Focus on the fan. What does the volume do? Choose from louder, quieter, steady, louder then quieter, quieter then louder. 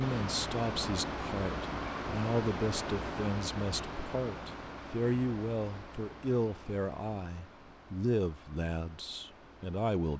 quieter.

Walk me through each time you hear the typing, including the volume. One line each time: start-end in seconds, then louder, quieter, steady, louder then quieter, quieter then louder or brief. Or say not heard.
not heard.